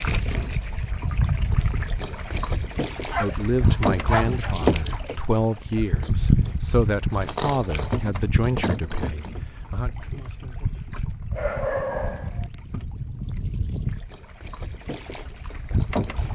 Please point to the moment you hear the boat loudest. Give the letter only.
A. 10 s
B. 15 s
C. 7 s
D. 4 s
D.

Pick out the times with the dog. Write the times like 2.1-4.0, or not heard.
2.9-4.8, 11.3-12.5.